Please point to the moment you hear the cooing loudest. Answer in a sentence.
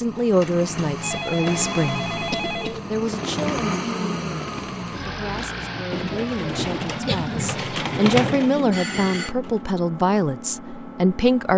The loudest moment of the cooing is at 8 seconds.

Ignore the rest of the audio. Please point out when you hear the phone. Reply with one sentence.
You can hear the phone from 0.2 to 2.8 s and from 8.7 to 9.3 s.